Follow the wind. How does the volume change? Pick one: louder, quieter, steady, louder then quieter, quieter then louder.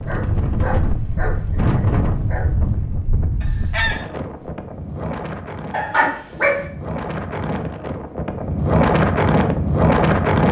quieter then louder.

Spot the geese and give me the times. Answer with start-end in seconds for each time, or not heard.
3.4-4.5.